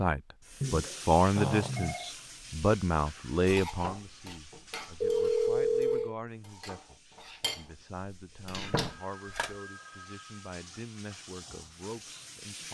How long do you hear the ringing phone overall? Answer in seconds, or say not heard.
4 s.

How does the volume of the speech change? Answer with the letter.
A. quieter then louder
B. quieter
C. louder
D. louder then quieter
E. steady
B.